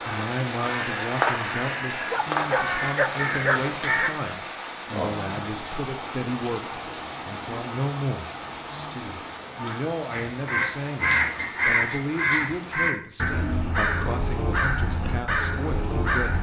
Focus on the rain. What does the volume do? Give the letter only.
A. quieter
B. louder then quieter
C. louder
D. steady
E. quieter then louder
A.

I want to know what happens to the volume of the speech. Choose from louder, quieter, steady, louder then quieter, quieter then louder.
steady.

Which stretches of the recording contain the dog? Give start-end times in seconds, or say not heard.
2.1-4.2.